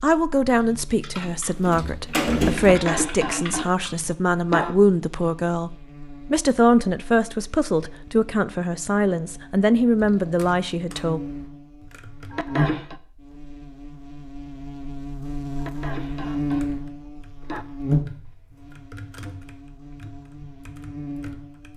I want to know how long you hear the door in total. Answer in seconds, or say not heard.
2 s.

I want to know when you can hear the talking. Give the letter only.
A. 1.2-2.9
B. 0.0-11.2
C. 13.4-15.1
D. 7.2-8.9
B.